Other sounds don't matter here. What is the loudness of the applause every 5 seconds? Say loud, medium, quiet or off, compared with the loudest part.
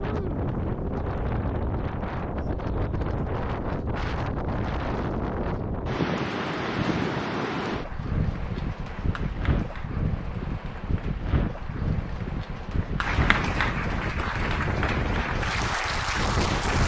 off, quiet, medium, loud.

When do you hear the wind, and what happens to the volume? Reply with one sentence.
The wind can be heard from 0.0 to 16.8 s, at a steady volume.